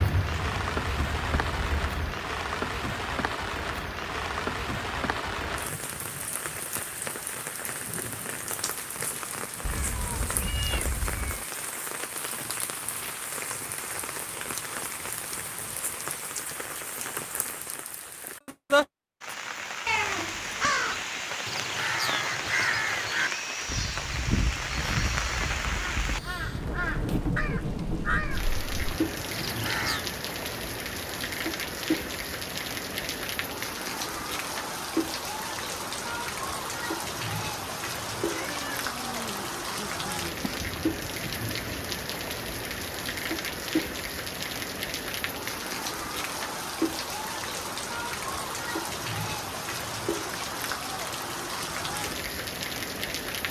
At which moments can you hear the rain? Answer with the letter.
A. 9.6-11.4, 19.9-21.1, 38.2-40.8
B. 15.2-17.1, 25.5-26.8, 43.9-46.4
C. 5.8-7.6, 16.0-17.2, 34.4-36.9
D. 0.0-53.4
D.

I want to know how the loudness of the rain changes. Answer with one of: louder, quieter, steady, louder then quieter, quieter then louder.
steady.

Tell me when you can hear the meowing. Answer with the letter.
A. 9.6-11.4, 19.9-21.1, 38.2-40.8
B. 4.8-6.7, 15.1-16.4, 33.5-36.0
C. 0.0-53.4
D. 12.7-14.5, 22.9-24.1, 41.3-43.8
A.